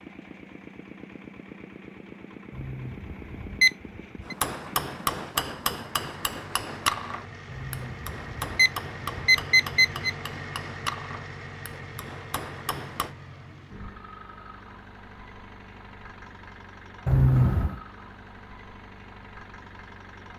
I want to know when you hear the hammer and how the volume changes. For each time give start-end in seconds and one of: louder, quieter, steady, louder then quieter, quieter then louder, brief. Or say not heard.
4.2-13.2 quieter.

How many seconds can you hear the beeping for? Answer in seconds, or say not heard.
5 s.